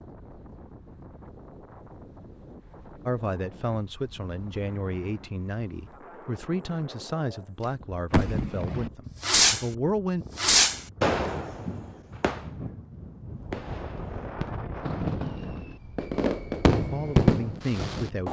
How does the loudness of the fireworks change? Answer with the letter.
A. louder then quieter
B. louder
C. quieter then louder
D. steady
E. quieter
C.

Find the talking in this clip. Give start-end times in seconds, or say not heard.
3.0-10.2, 16.8-18.2.